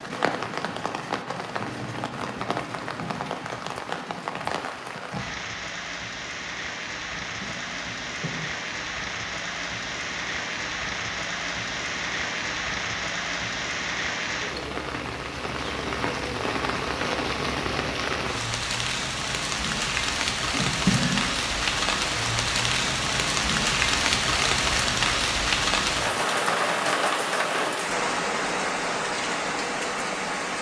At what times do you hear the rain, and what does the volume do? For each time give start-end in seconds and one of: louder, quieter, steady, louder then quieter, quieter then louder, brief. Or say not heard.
0.0-30.5 louder.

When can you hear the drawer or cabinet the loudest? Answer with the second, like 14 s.
21 s.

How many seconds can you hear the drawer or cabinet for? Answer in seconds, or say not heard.
2 s.